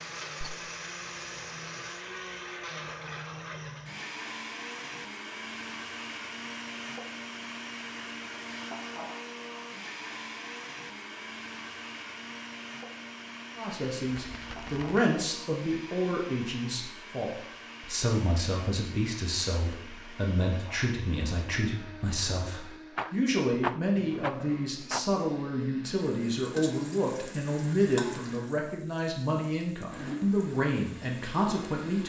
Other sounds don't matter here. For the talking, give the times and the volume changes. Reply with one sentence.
The talking can be heard from 13.6 to 32.0 s, at a steady volume.